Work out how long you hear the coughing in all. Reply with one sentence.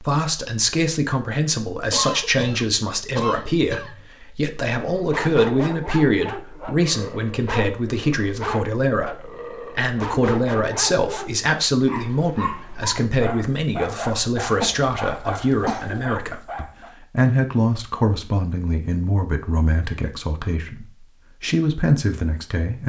You can hear the coughing for 4 seconds altogether.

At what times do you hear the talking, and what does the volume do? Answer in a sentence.
The talking can be heard from 0.0 to 22.8 s, at a steady volume.